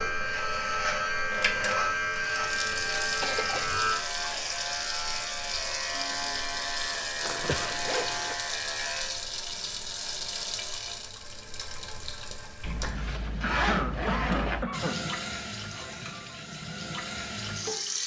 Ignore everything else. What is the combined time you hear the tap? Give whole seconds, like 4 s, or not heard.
16 s.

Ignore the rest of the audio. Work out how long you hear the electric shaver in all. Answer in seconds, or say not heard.
9 s.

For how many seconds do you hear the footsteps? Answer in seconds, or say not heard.
not heard.